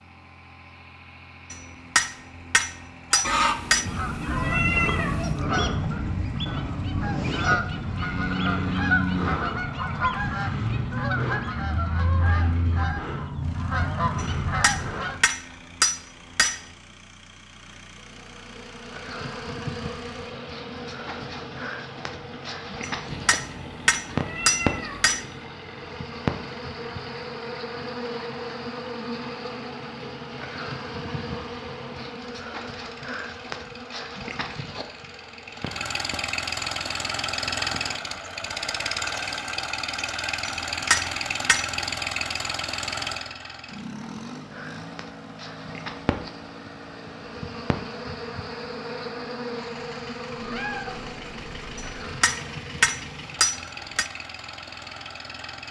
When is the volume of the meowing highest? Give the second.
5 s.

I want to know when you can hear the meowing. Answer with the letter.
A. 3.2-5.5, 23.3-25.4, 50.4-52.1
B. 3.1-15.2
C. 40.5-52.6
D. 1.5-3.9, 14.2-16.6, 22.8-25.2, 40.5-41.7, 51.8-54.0
A.